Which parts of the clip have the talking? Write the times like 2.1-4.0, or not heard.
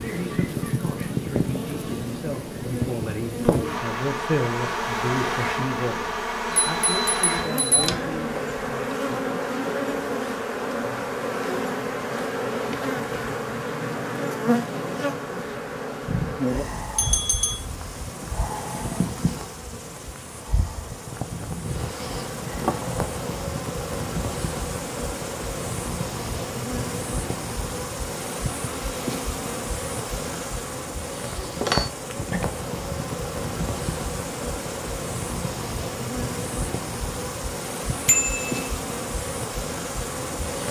0.0-9.2.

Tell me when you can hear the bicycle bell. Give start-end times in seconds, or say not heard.
6.5-7.9, 16.9-17.6, 38.0-38.7.